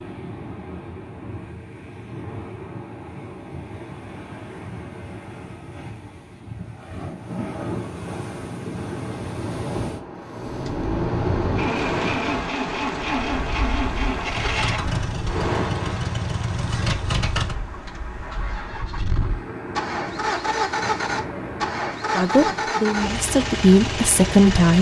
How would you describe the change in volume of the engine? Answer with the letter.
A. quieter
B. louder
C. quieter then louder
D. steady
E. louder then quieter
D.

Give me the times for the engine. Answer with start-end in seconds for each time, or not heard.
10.3-24.7.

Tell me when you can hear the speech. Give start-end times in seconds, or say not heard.
22.1-24.7.